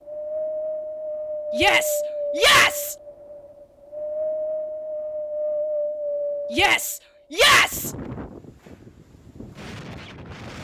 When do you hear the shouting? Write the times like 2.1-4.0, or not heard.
1.6-3.0, 6.5-7.9.